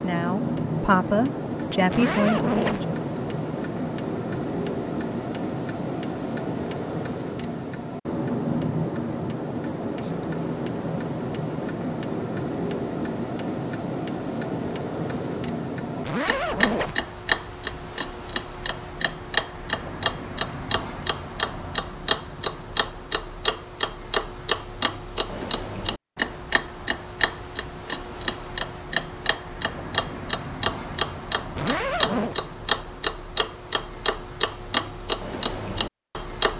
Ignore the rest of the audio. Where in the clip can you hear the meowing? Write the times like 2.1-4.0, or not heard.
not heard.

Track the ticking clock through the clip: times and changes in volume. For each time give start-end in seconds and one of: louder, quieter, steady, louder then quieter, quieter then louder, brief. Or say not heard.
0.0-36.5 steady.